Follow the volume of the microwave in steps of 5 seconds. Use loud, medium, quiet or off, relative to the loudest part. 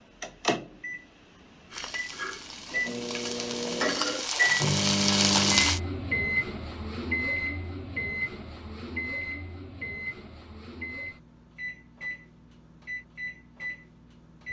loud, loud, medium.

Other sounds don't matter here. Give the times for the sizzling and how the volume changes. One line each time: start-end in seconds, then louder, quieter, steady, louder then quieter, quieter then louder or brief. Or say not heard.
1.7-5.8 louder.